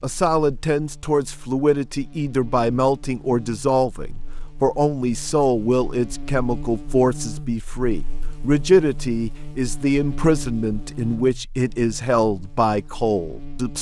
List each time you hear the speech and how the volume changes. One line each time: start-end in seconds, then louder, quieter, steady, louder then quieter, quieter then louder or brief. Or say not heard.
0.0-13.7 steady.